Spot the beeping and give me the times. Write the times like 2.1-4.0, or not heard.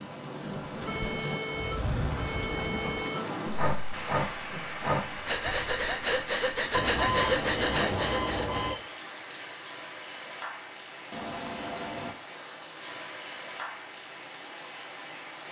0.8-3.2, 6.7-8.8, 11.1-12.2.